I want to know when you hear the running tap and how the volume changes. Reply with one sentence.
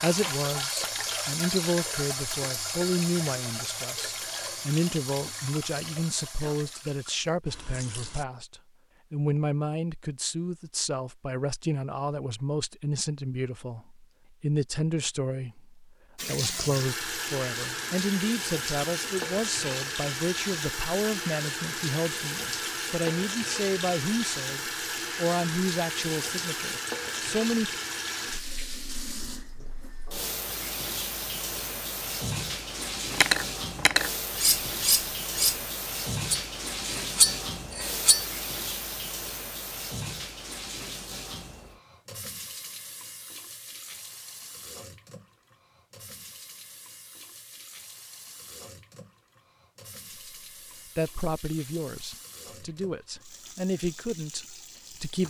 You can hear the running tap from 0.0 to 8.2 s, getting quieter; and from 16.1 to 55.2 s, getting quieter.